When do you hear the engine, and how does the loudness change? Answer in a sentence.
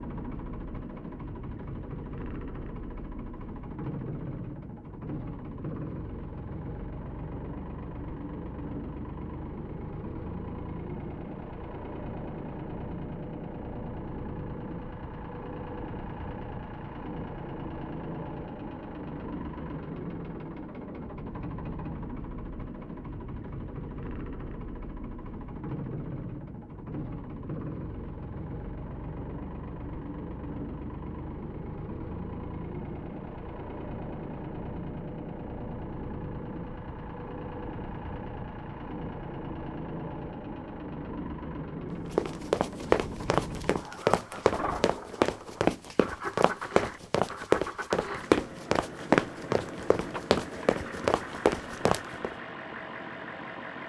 The engine can be heard from 0.0 to 53.8 s, at a steady volume.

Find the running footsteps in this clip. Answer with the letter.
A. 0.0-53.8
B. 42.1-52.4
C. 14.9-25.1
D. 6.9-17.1
B.